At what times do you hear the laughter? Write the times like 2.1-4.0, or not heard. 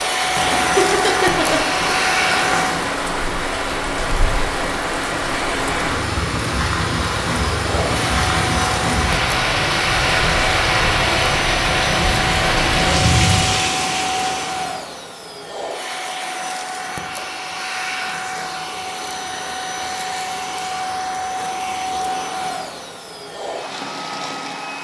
0.3-1.7.